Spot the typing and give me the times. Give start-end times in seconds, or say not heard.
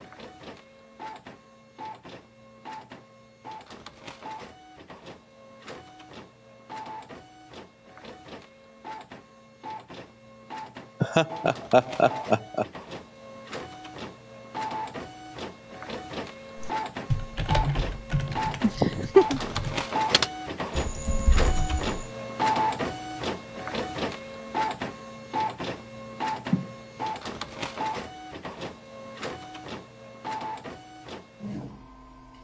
16.6-22.0.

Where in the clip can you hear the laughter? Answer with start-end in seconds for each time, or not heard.
11.0-12.7, 18.6-19.4.